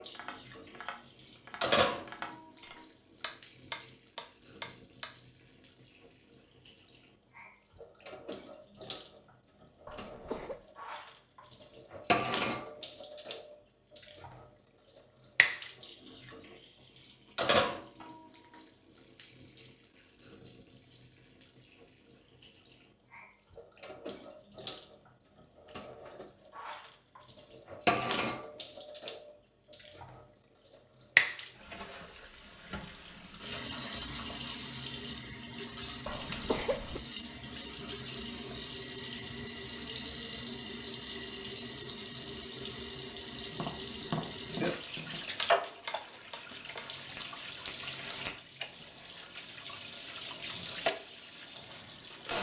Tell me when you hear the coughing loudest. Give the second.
37 s.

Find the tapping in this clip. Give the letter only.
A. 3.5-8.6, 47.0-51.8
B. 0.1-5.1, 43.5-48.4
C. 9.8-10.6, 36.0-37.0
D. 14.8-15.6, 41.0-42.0
B.